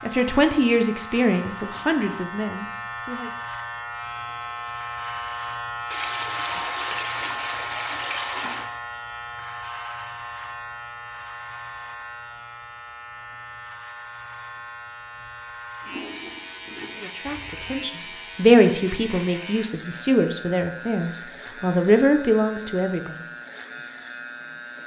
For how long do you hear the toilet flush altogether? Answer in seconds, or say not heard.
4 s.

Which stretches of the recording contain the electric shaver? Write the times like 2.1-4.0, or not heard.
0.0-24.8.